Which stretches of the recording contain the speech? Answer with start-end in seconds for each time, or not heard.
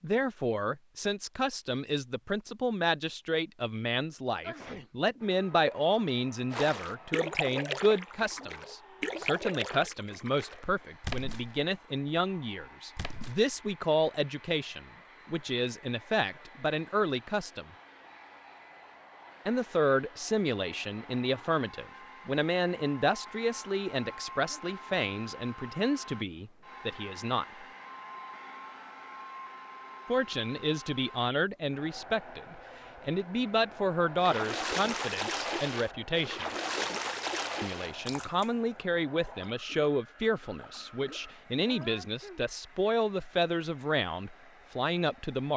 0.0-17.6, 19.4-27.4, 30.1-36.5, 37.6-45.5.